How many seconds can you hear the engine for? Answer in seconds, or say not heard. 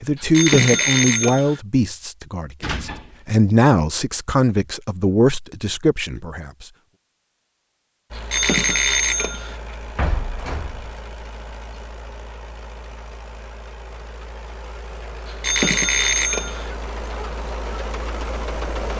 11 s.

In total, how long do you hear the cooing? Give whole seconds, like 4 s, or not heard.
not heard.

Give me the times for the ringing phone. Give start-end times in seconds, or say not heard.
0.1-1.6, 8.2-9.6, 15.2-16.7.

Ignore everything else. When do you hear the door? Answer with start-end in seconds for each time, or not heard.
2.6-3.1, 9.9-11.0.